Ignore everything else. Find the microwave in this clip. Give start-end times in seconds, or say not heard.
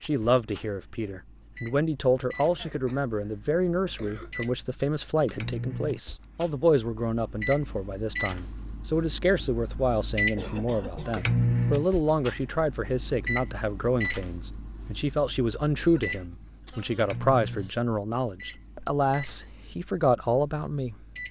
0.0-21.2.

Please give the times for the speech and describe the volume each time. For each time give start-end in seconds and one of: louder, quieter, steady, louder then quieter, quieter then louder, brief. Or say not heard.
0.0-20.9 steady.